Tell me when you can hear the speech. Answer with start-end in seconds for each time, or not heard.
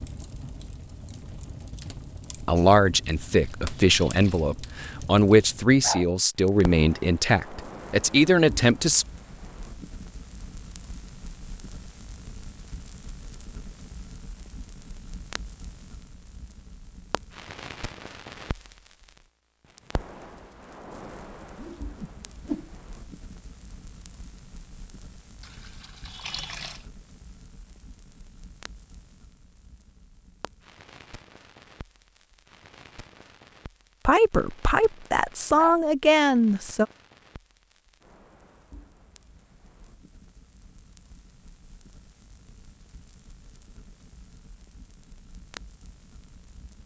2.5-9.1, 34.0-36.9.